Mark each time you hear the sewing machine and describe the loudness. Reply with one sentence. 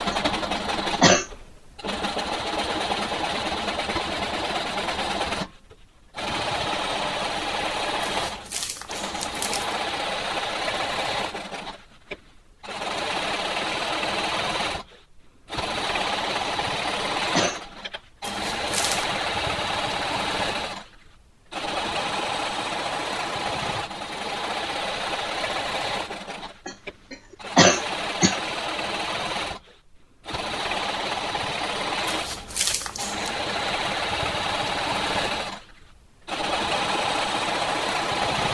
You can hear the sewing machine from 0.0 to 38.4 s, at a steady volume.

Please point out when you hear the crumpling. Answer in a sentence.
You can hear the crumpling from 8.2 to 9.8 s, from 18.2 to 19.1 s and from 32.0 to 33.3 s.